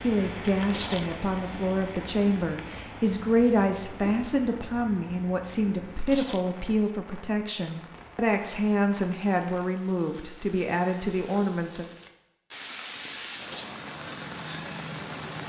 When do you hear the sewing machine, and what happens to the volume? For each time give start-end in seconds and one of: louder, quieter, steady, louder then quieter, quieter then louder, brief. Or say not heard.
not heard.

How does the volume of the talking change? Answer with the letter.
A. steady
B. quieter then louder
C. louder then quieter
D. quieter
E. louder
A.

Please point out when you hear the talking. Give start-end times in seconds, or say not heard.
0.0-11.8.